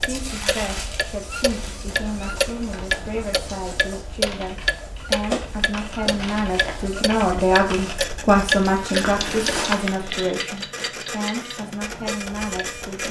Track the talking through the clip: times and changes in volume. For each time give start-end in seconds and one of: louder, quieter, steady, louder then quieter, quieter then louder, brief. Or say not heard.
0.0-13.0 louder then quieter.